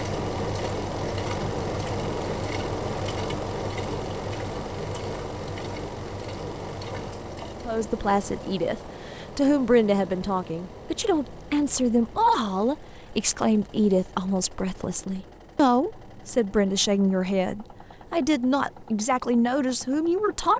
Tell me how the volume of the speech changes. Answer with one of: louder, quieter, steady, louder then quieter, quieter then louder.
steady.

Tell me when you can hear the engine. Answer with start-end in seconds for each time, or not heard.
0.0-20.5.